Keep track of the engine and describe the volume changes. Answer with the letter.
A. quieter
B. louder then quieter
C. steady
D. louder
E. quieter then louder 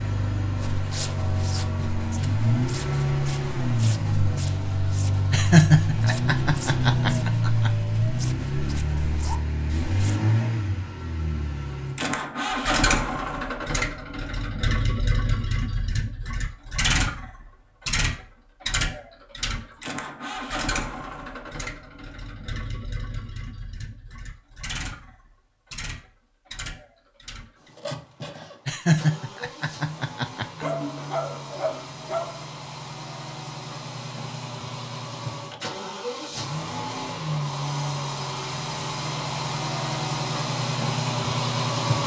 E.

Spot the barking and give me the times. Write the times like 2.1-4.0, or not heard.
30.6-32.5.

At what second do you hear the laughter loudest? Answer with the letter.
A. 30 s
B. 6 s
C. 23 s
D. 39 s
B.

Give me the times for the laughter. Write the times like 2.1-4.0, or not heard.
5.3-7.7, 28.6-30.6.